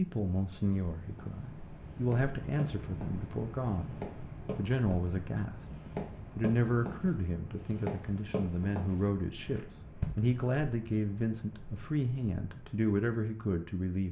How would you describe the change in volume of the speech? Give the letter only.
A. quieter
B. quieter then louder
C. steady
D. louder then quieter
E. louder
C.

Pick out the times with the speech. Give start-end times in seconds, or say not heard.
0.0-4.0, 4.5-14.0.